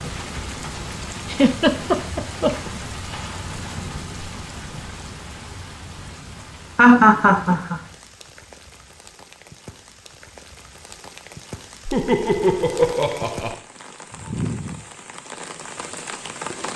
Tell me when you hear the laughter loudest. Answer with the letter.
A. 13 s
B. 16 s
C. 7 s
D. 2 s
C.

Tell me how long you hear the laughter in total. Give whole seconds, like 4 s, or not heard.
4 s.